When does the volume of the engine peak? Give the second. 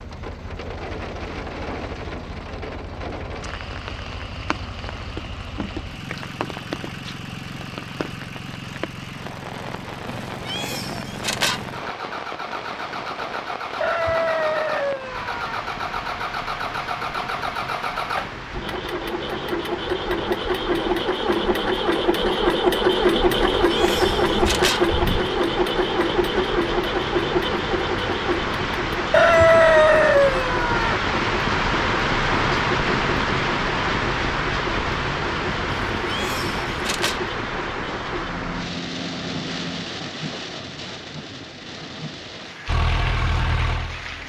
23 s.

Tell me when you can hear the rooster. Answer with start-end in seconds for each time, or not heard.
13.8-15.5, 29.1-30.9.